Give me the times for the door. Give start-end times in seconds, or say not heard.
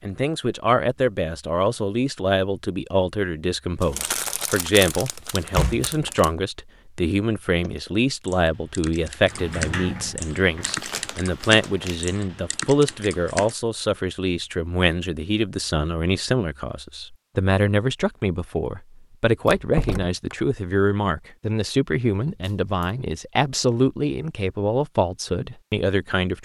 5.5-6.1, 9.2-10.8, 19.4-20.4.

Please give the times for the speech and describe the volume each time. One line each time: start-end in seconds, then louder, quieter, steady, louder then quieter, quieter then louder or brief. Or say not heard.
0.0-26.4 steady.